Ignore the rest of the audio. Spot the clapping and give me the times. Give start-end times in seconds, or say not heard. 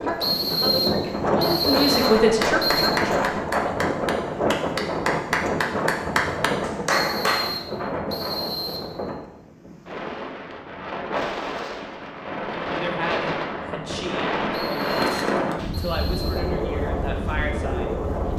2.4-7.5.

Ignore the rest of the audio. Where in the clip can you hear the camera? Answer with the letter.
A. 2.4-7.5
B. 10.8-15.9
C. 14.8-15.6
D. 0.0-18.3
C.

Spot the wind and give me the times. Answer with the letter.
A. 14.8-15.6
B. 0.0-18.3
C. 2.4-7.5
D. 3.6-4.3
B.